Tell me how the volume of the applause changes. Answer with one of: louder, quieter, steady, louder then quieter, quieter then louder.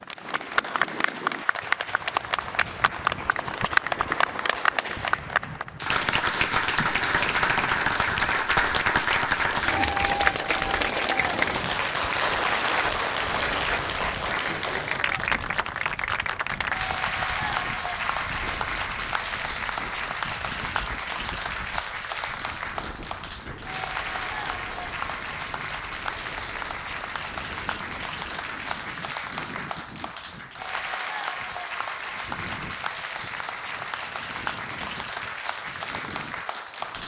quieter.